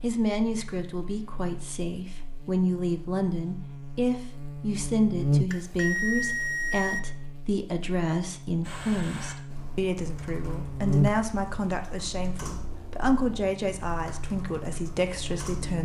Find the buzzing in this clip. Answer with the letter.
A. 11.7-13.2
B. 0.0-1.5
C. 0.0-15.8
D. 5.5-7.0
C.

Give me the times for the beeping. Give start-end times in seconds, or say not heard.
5.5-7.0.